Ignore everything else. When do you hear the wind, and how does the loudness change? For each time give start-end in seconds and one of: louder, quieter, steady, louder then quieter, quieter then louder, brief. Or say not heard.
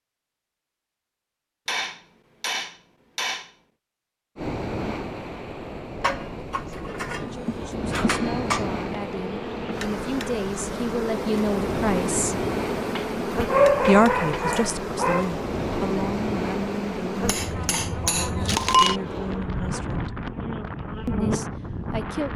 4.3-22.3 steady.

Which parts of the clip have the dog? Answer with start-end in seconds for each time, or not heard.
13.4-15.3.